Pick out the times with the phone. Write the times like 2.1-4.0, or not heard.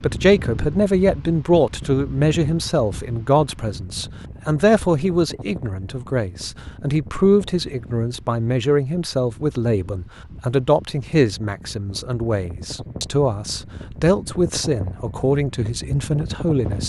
not heard.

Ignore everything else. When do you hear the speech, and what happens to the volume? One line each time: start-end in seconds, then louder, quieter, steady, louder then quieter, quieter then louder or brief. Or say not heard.
0.0-16.8 steady.